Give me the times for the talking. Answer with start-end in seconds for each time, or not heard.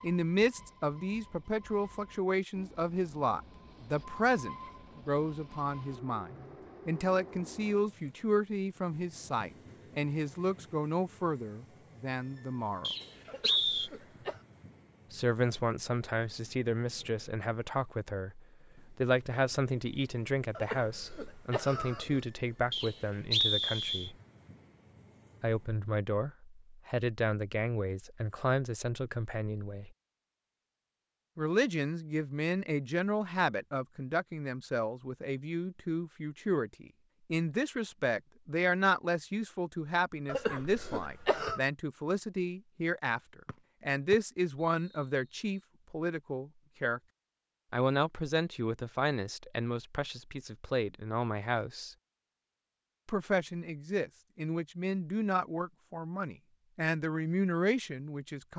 0.0-12.9, 15.1-24.1, 25.4-29.9, 31.4-47.0, 47.7-52.0, 53.0-58.5.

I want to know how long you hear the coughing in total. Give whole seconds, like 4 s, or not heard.
4 s.